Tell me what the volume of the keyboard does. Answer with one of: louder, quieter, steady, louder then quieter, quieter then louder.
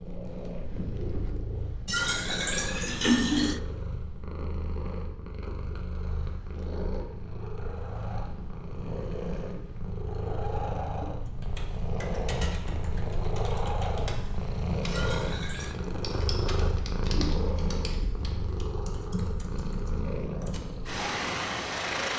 steady.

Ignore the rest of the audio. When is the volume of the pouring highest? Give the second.
3 s.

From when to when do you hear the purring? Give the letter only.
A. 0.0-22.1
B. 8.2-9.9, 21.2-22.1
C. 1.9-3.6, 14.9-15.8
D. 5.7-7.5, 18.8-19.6
A.